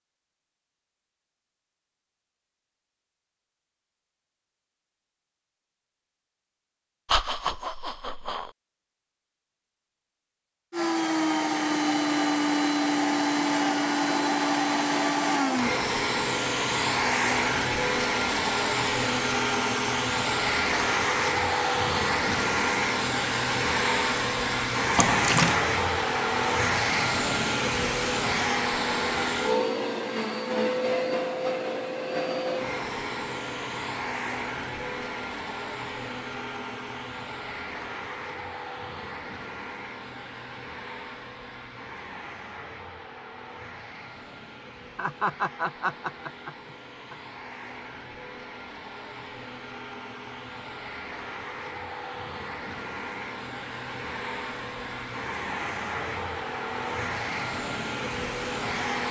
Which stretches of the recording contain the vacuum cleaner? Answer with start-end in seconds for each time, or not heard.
10.7-59.0.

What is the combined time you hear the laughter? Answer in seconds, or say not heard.
4 s.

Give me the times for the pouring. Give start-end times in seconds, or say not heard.
24.9-25.6.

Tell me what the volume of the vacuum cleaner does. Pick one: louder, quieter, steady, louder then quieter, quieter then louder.
quieter then louder.